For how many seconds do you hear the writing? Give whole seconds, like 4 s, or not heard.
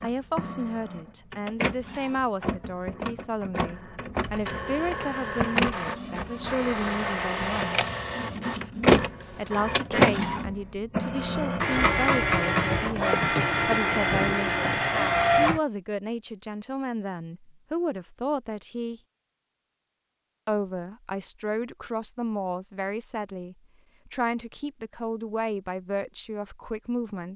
not heard.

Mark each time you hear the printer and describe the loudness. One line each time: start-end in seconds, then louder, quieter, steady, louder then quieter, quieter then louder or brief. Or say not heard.
0.0-15.6 louder.